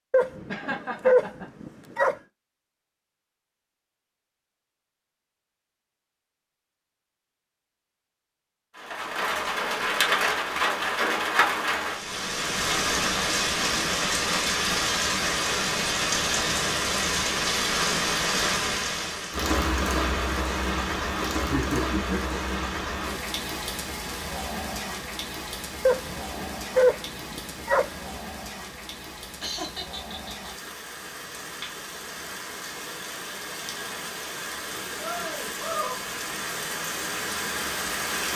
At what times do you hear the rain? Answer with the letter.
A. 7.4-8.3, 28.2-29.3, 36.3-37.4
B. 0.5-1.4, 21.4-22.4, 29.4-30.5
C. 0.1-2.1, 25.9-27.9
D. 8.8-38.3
D.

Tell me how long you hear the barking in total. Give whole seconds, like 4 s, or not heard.
4 s.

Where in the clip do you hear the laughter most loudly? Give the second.
22 s.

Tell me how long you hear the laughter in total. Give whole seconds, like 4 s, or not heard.
3 s.